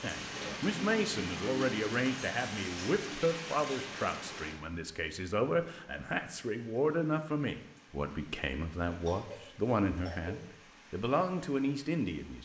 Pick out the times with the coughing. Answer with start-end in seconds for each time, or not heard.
0.3-1.8, 8.8-10.4.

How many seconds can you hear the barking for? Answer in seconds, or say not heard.
not heard.